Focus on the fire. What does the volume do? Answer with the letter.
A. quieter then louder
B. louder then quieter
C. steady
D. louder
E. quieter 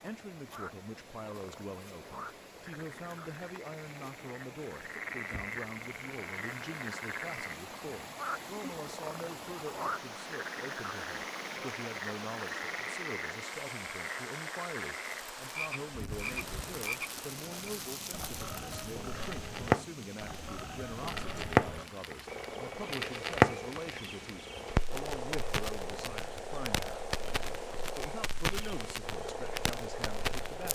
B.